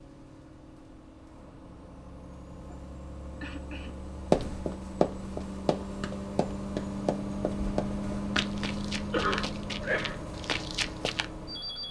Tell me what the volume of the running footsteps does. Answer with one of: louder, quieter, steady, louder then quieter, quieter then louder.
quieter.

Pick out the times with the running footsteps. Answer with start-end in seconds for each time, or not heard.
4.3-11.2.